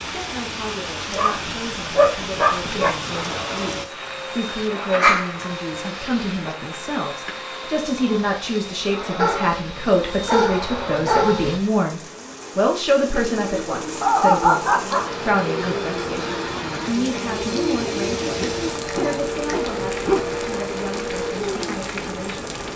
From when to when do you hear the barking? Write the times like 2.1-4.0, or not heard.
1.1-3.0, 5.0-6.3, 9.2-11.6, 14.0-15.1, 18.4-20.4.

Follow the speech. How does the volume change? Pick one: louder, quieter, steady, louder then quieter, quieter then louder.
louder then quieter.